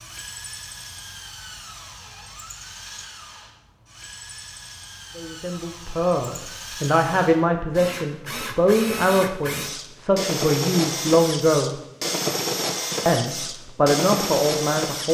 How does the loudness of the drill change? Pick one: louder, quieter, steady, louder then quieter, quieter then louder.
louder.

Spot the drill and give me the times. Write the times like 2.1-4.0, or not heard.
0.0-15.1.